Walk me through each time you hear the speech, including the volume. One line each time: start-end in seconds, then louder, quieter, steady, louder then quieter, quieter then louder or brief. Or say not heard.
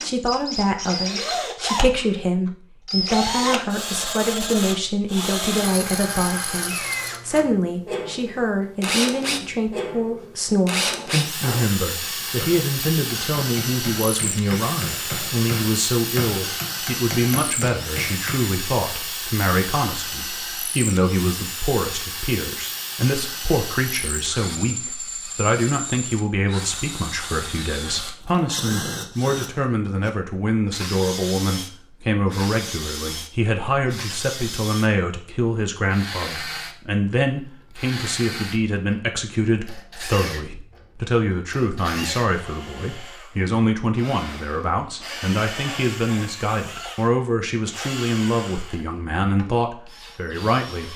0.0-50.9 steady.